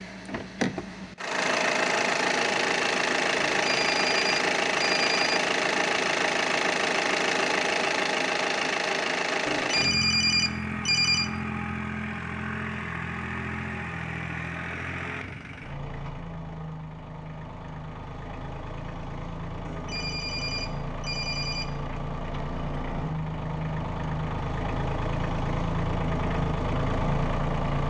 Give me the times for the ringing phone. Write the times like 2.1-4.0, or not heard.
3.5-5.4, 9.4-11.3, 19.6-21.6.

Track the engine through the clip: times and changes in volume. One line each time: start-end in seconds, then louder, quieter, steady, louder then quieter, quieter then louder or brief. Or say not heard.
0.0-27.8 quieter then louder.